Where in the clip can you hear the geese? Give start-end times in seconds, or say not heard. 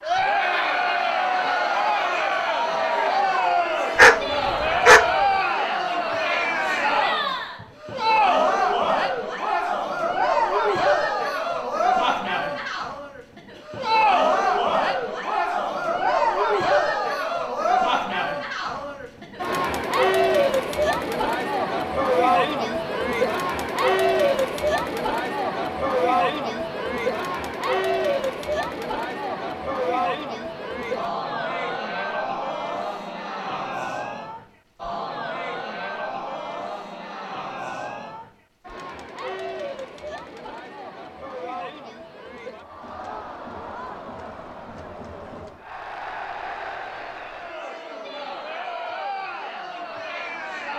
not heard.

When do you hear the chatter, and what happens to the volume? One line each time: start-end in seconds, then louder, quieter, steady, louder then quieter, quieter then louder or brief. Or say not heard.
0.0-50.7 quieter.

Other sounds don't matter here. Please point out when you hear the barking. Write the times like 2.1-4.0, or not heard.
4.0-5.1.